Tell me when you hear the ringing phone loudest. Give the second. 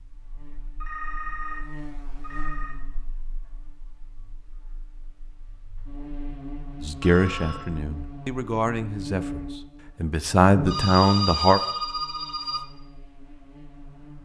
11 s.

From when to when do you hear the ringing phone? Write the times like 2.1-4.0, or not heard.
0.8-2.8, 7.0-7.7, 10.7-12.7.